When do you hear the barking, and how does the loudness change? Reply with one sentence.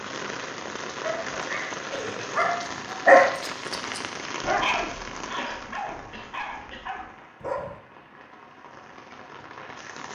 The barking can be heard from 1.0 to 7.8 s, getting louder then quieter.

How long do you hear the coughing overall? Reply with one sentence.
You can hear the coughing for 2 seconds altogether.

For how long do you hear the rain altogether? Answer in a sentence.
You can hear the rain for 10 seconds altogether.